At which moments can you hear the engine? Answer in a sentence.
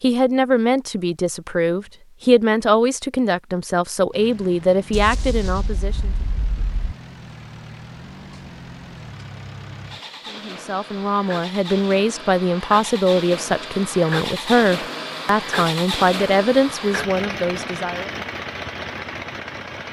The engine can be heard from 4.1 to 19.8 s.